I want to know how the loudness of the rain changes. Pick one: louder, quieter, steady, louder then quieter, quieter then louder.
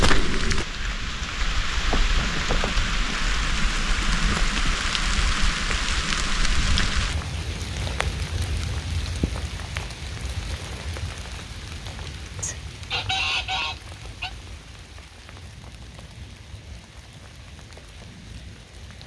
quieter.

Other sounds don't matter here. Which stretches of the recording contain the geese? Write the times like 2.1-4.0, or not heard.
12.4-14.3.